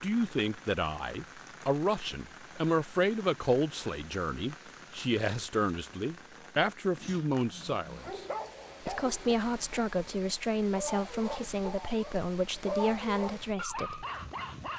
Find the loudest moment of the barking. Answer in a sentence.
The loudest moment of the barking is at 13 seconds.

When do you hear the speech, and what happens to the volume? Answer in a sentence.
The speech can be heard from 0.0 to 14.1 s, at a steady volume.